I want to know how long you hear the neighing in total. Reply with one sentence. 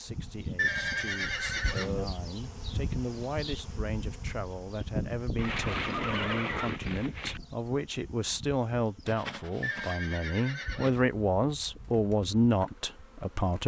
The neighing can be heard for 5 seconds in total.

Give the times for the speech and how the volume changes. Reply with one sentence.
You can hear the speech from 0.0 to 13.6 s, getting louder.